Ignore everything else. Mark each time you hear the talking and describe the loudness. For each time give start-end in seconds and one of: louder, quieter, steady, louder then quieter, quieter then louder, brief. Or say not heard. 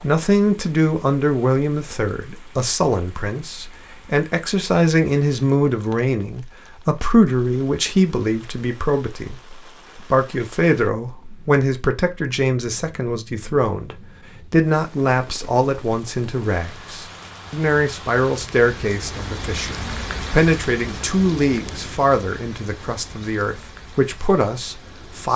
0.0-25.3 steady.